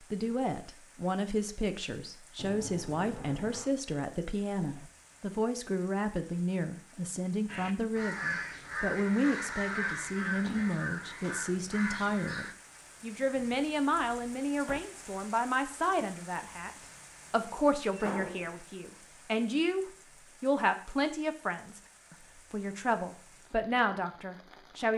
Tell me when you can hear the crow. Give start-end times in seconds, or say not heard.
7.5-12.6.